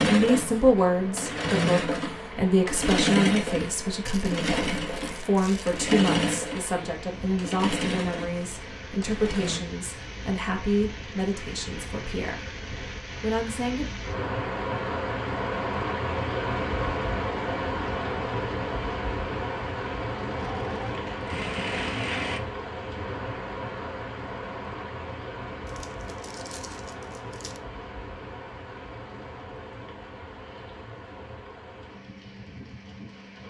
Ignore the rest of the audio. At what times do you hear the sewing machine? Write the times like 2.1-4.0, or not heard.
0.0-9.6, 20.4-22.4.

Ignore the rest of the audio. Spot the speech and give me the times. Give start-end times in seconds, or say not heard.
0.1-12.6, 13.2-13.9.